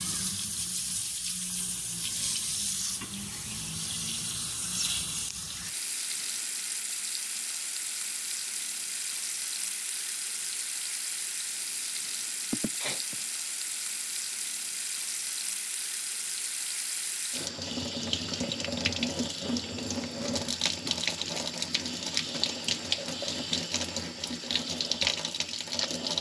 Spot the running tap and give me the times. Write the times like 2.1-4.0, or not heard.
0.0-26.1.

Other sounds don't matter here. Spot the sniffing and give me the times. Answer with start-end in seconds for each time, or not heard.
12.5-13.2.